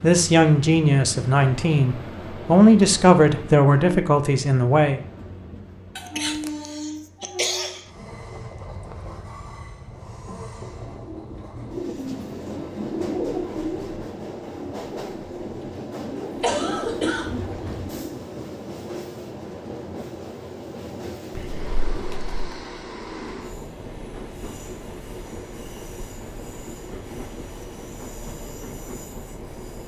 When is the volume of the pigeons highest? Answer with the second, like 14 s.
13 s.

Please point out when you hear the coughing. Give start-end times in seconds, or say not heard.
6.0-7.8, 16.4-17.4, 21.3-22.4.